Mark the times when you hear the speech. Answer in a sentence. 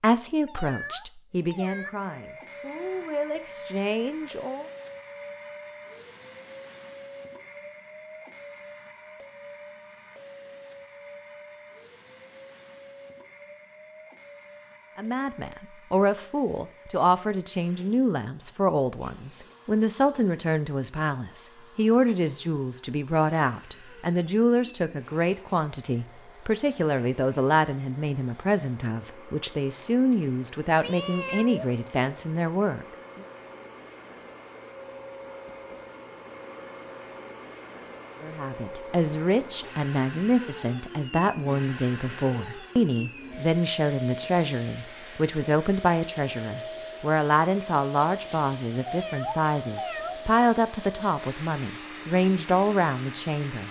You can hear the speech from 0.0 to 4.7 s, from 14.9 to 33.2 s and from 38.2 to 53.6 s.